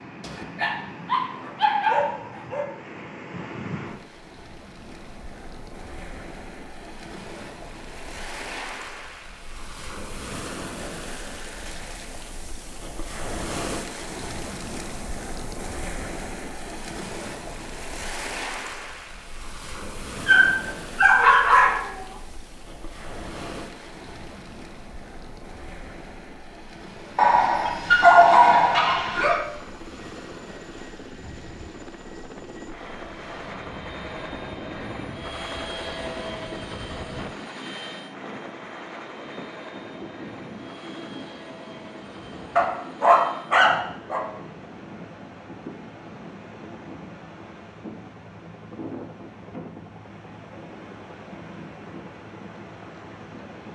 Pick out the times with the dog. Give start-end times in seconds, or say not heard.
0.2-2.6, 20.2-22.0, 27.1-29.4, 42.5-44.2.